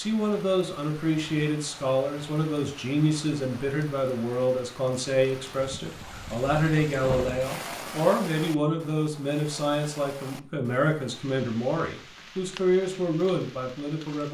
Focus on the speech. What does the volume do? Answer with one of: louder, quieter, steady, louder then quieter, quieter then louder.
steady.